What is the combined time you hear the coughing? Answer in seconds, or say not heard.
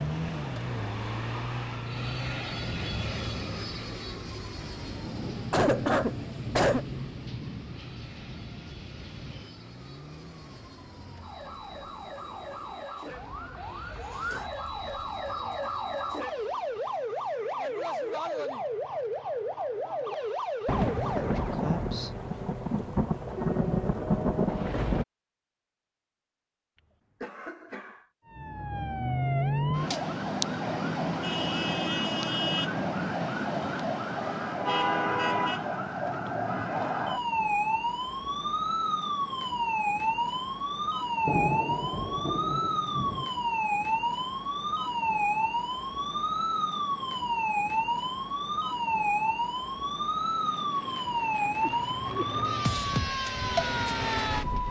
3 s.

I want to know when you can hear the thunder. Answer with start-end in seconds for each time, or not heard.
4.6-9.6, 20.6-25.1, 41.2-43.3.